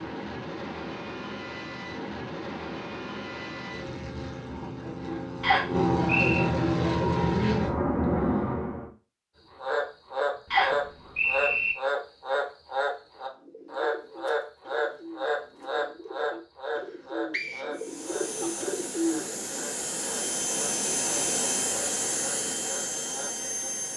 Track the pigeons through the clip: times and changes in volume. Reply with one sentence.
You can hear the pigeons from 13.2 to 19.6 s, getting louder.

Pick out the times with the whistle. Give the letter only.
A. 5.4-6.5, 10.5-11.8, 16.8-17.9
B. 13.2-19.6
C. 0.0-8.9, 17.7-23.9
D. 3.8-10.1
A.